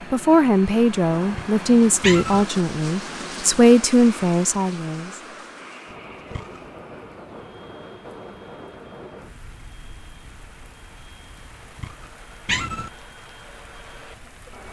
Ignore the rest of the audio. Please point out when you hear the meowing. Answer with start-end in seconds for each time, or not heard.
1.3-2.5, 5.8-6.7, 11.8-12.9.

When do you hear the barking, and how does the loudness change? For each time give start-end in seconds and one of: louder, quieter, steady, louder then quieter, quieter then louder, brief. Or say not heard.
not heard.